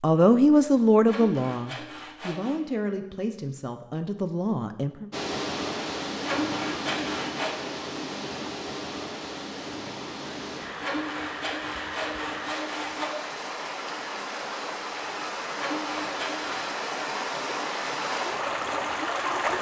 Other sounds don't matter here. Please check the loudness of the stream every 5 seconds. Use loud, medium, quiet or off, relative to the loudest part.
off, loud, medium, loud.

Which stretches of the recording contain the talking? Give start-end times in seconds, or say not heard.
0.0-5.1.